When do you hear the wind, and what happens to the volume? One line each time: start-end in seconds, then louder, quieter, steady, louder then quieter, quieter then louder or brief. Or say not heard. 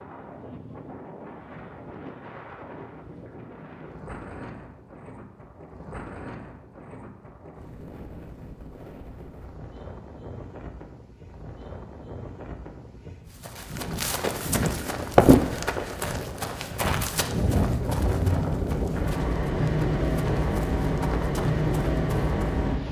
0.0-22.8 louder.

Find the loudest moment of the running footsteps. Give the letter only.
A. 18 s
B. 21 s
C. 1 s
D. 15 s
D.